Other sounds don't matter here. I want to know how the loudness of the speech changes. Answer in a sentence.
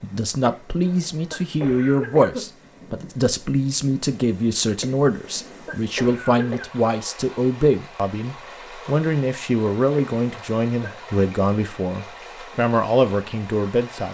The volume of the speech stays about the same.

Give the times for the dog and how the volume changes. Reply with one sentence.
You can't hear the dog here.